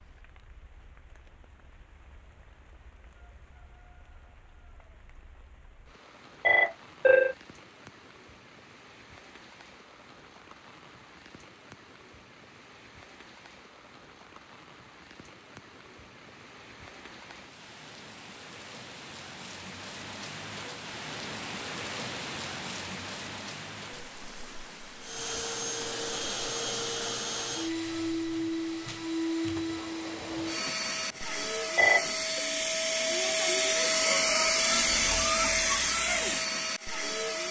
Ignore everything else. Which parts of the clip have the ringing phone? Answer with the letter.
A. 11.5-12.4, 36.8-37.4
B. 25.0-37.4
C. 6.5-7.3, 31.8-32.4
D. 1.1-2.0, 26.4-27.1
C.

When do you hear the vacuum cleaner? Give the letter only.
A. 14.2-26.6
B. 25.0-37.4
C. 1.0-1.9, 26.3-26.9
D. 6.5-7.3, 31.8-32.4
B.